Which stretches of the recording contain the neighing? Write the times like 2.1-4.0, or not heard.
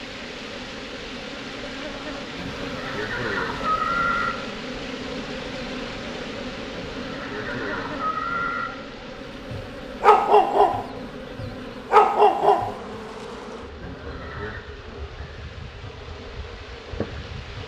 2.4-4.3, 6.7-8.7, 13.8-14.7.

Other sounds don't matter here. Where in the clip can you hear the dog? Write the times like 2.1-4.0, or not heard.
9.5-12.7.